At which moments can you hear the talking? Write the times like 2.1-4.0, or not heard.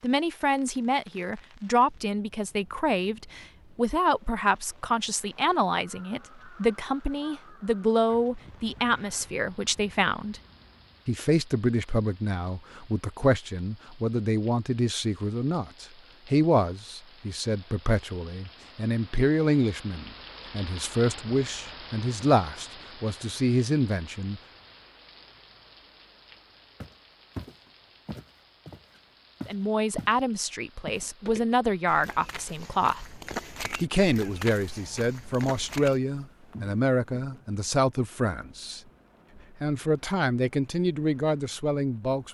0.0-10.4, 11.1-24.4, 29.4-33.0, 33.8-38.8, 39.6-42.2.